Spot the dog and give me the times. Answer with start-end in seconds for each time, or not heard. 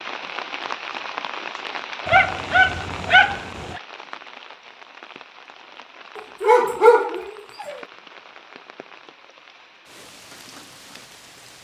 2.0-3.8, 6.2-7.8.